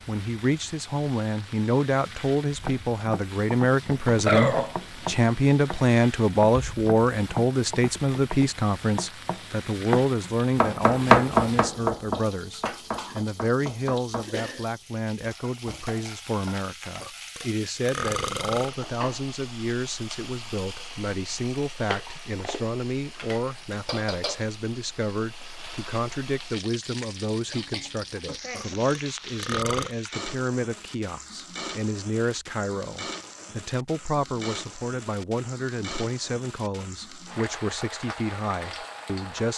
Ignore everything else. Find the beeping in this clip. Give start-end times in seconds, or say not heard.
not heard.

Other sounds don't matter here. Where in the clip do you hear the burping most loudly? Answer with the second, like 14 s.
4 s.